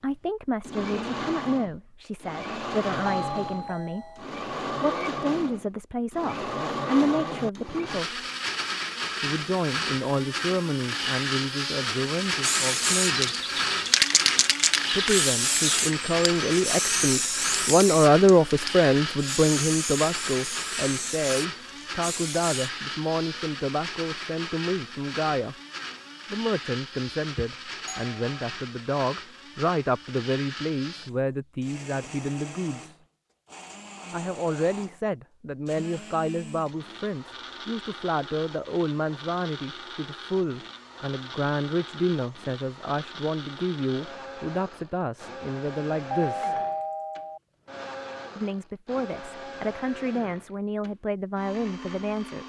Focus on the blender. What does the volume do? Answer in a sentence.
The volume of the blender goes down.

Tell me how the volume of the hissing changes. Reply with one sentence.
The volume of the hissing goes down.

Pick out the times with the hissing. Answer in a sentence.
The hissing can be heard from 12.3 to 22.8 s.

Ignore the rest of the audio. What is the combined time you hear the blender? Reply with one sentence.
The blender can be heard for 52 seconds in total.